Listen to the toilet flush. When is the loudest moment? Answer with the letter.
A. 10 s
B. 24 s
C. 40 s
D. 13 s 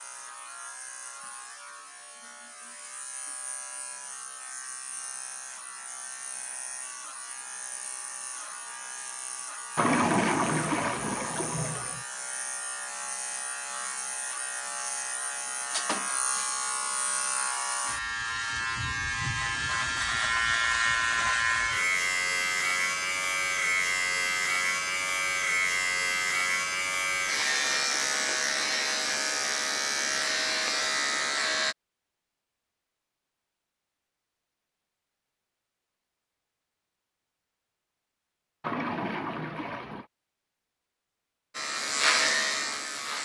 A.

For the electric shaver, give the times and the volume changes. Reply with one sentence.
You can hear the electric shaver from 0.0 to 31.8 s, getting louder; and briefly from 41.5 to 43.1 s.